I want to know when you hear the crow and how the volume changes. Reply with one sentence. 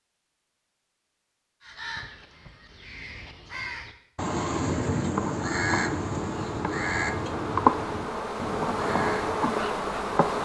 The crow can be heard from 1.6 to 9.6 s, getting louder then quieter.